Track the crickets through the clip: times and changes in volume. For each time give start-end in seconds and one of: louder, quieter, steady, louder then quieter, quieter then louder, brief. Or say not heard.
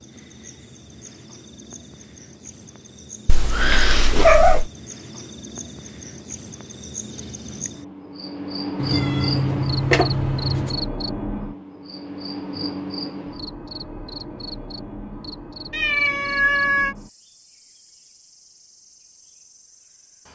0.0-20.3 louder then quieter.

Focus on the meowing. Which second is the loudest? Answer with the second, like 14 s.
4 s.